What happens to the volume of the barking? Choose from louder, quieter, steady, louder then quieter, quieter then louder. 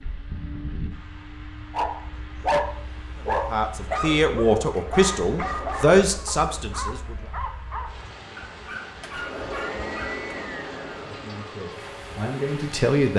quieter.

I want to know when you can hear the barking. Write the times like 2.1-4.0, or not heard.
1.7-10.2.